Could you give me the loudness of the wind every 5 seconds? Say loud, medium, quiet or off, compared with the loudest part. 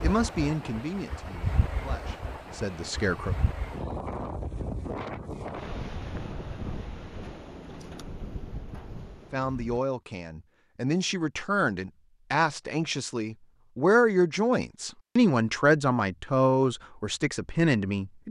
loud, loud, off, off.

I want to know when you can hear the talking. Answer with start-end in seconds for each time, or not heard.
0.0-3.4, 9.3-18.2.